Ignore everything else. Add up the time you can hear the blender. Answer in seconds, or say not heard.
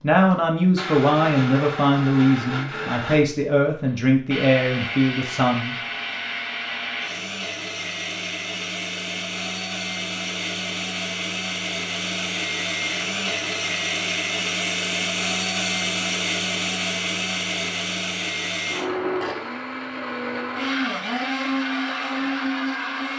23 s.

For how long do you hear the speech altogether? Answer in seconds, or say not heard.
6 s.